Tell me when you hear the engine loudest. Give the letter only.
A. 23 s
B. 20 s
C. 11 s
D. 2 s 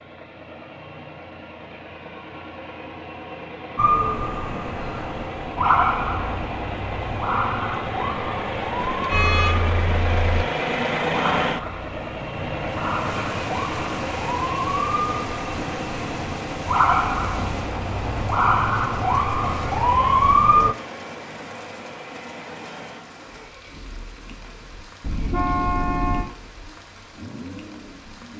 C.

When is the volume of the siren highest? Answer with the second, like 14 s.
20 s.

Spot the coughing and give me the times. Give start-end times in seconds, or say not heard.
not heard.